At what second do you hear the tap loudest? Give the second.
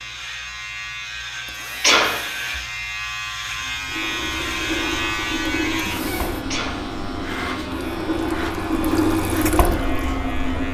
9 s.